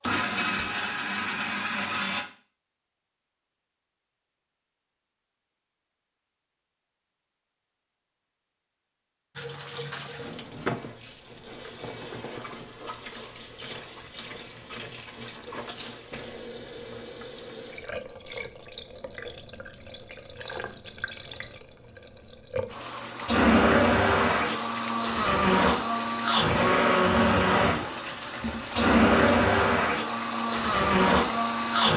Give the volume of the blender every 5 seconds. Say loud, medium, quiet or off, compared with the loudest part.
medium, off, off, off, loud, loud, loud.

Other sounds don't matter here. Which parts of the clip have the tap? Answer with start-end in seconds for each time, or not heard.
9.3-31.9.